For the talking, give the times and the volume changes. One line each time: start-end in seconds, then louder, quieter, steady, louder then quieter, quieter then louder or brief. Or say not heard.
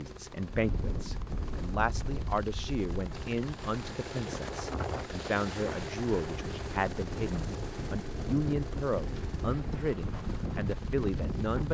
0.0-11.6 steady.